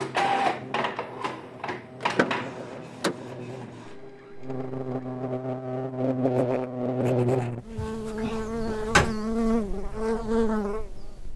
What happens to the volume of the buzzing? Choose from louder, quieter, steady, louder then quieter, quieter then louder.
louder.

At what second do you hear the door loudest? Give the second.
9 s.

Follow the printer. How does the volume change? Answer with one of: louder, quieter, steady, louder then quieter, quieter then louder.
quieter.